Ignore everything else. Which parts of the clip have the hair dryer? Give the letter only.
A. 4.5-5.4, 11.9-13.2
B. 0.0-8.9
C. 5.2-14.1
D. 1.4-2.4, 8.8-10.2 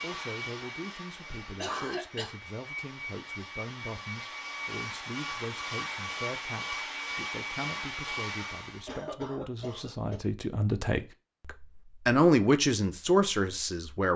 B.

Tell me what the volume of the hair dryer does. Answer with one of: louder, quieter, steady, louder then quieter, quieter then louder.
louder.